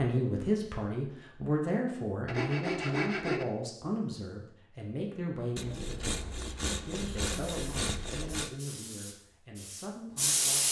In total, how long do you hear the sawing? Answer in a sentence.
You can hear the sawing for 4 seconds altogether.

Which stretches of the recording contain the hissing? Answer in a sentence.
The hissing can be heard from 7.0 to 10.6 s.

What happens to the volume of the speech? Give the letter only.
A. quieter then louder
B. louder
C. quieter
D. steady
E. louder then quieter
C.